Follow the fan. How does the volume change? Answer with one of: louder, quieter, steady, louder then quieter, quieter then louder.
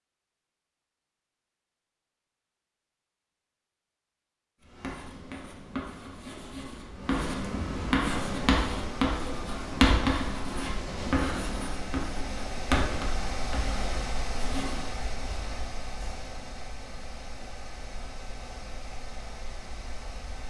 louder then quieter.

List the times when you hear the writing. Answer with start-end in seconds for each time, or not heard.
4.6-14.9.